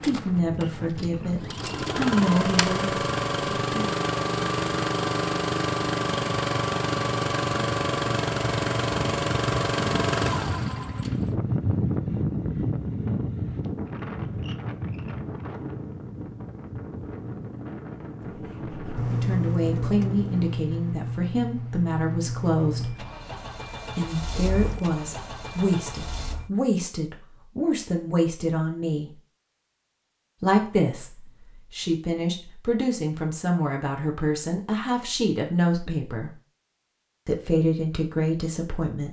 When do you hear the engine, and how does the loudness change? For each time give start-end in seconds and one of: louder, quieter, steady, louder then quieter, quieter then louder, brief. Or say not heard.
0.0-11.2 steady
18.2-26.5 quieter.